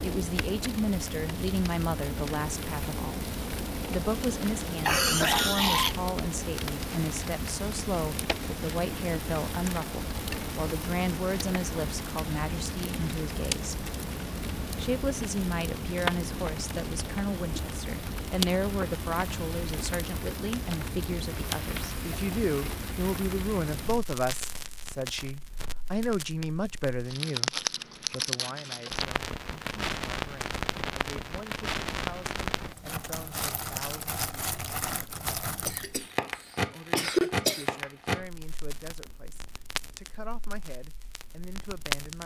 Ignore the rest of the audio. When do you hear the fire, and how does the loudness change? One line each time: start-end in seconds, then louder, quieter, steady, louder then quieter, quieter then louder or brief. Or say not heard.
0.0-42.2 steady.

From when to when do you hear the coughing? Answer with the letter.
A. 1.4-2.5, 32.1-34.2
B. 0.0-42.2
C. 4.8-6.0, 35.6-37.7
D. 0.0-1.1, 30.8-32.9
C.